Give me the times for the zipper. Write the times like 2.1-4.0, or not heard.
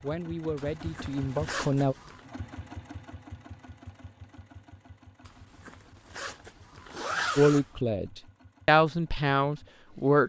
0.6-2.2, 5.2-7.7.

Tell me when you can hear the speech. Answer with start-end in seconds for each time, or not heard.
0.0-1.9, 7.3-10.2.